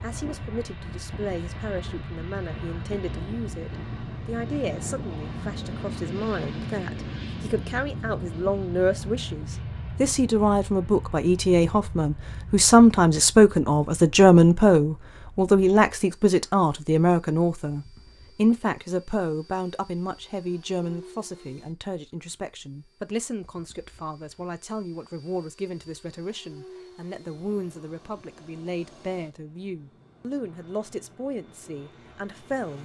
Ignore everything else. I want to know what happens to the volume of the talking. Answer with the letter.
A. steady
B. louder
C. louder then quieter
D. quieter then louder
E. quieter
C.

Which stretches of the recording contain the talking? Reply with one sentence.
You can hear the talking from 0.0 to 32.7 s.